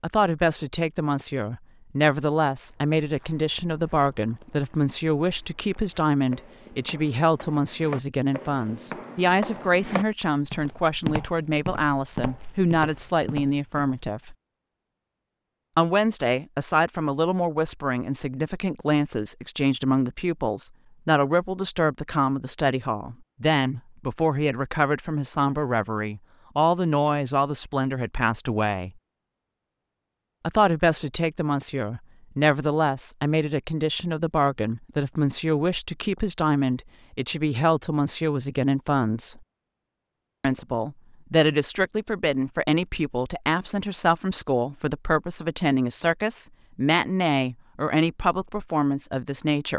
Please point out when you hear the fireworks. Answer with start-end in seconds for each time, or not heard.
not heard.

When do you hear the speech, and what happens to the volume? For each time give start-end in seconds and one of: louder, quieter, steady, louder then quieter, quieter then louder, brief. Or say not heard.
0.0-14.3 steady
15.8-28.9 steady
30.4-39.4 steady
40.4-49.7 steady.